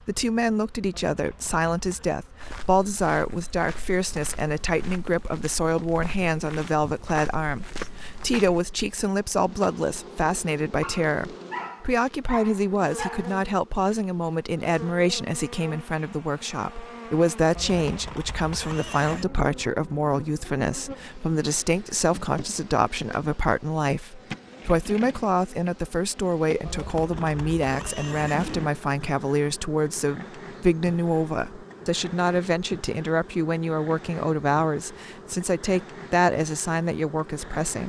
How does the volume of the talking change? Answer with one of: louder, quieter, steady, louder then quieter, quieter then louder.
steady.